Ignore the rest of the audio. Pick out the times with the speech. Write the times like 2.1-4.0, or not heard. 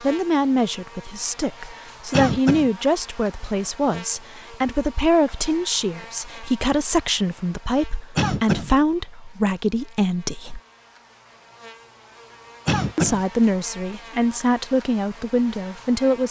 0.0-10.6, 12.9-16.2.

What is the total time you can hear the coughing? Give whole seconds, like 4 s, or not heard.
2 s.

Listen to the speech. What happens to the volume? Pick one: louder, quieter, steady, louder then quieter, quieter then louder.
steady.